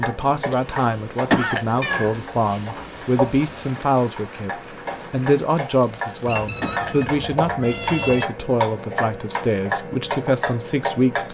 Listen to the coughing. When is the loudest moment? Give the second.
1 s.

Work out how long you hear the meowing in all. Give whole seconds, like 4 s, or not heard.
3 s.